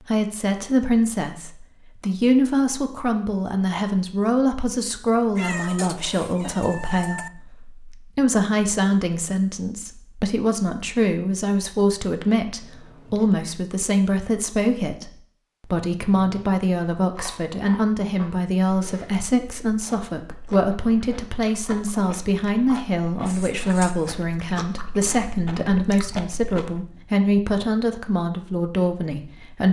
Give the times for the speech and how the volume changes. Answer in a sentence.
The speech can be heard from 0.1 to 29.6 s, at a steady volume.